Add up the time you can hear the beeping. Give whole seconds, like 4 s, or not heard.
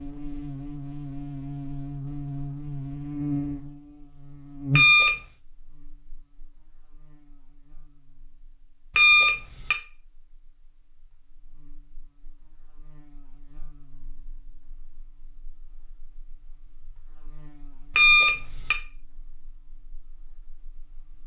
2 s.